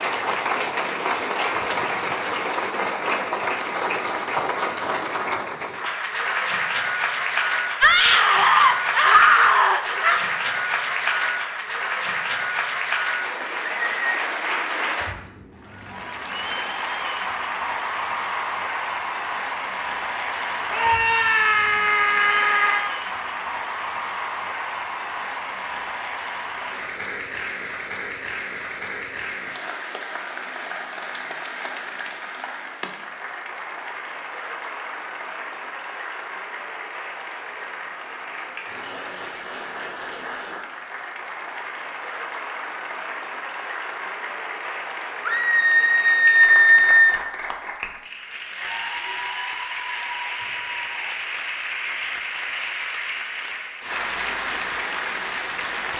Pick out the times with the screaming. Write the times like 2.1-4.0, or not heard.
7.8-10.2, 20.7-22.9, 45.2-47.2.